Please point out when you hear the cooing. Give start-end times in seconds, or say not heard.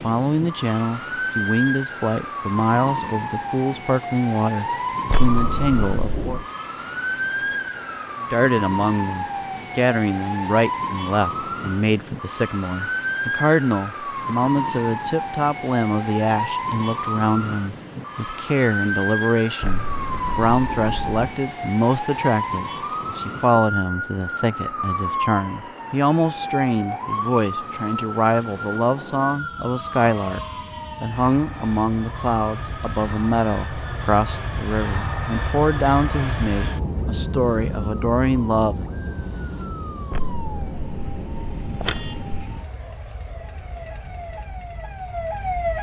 not heard.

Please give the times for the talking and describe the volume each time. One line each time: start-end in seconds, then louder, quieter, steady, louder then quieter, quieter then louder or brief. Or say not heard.
0.0-6.4 steady
8.3-38.9 steady.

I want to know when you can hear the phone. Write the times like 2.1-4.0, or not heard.
5.0-6.5, 19.6-21.2, 40.1-42.5.